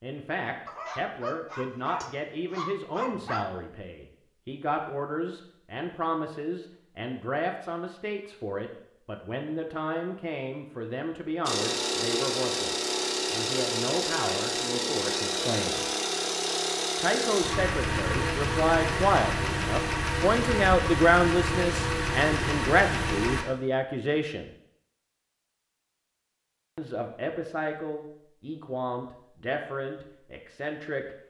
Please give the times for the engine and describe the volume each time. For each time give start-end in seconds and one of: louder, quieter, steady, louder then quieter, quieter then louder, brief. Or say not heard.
11.4-23.4 steady.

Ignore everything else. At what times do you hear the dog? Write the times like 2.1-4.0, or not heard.
0.7-3.6.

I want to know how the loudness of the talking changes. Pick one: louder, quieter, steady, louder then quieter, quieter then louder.
louder then quieter.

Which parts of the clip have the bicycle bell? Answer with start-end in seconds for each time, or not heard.
not heard.